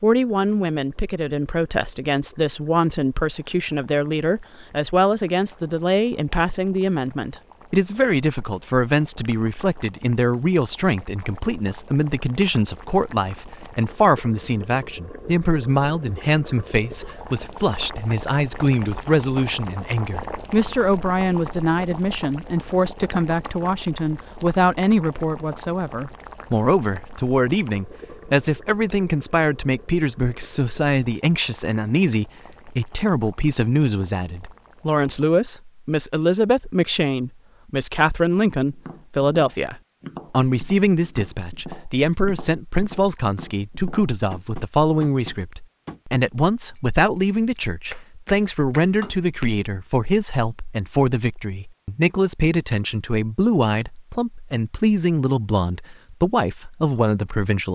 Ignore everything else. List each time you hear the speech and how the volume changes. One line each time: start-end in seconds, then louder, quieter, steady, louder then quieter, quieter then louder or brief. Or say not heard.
0.0-57.6 steady.